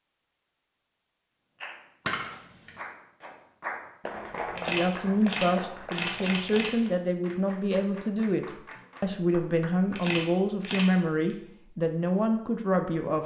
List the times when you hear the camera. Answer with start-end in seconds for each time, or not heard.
2.0-2.8, 4.5-6.9, 9.9-11.3.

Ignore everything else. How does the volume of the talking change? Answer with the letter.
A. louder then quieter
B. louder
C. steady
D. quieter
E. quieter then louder
C.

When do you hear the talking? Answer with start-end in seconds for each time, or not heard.
4.5-13.2.